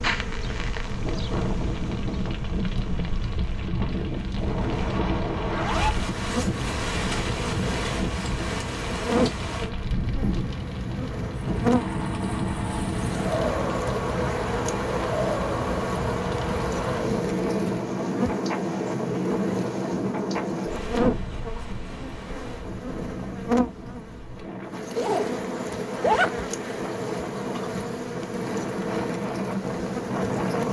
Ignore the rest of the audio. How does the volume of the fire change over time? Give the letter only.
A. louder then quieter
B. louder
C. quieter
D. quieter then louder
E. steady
E.